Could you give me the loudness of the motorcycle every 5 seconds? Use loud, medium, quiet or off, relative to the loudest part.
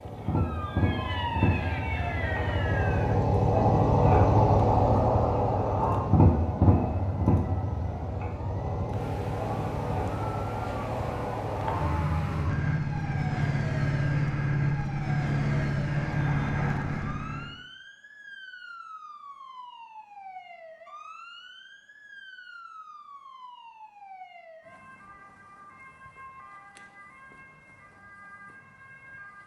loud, loud, loud, loud, off, off.